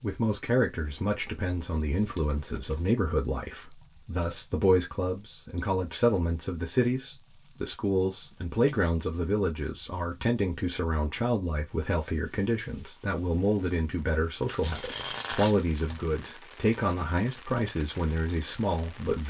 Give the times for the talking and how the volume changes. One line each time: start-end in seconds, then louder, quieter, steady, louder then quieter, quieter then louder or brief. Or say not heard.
0.0-19.2 steady.